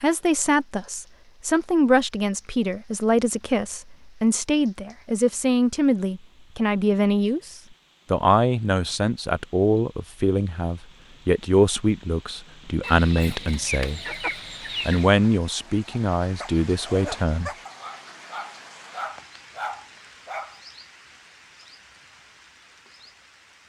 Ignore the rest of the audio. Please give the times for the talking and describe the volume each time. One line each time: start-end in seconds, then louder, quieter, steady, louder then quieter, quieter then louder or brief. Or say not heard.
0.0-14.0 steady
14.8-17.5 brief.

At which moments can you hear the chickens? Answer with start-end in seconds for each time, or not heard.
12.8-15.1.